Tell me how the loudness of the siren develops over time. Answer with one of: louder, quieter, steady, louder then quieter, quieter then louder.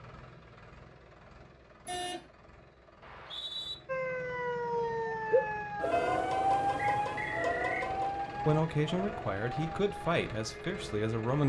quieter.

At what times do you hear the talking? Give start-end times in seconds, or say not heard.
8.4-11.4.